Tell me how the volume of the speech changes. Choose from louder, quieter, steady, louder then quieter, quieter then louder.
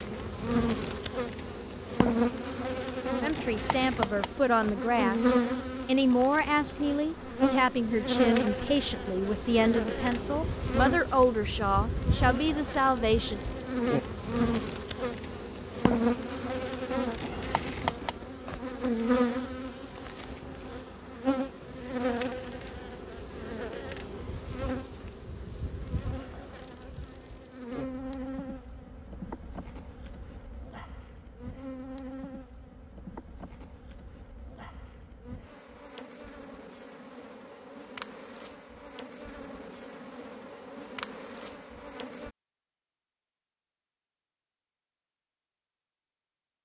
steady.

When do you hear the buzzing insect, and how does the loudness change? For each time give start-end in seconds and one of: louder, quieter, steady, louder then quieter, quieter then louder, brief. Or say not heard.
0.0-42.4 quieter.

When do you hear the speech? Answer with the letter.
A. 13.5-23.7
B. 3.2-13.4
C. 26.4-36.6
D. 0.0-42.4
B.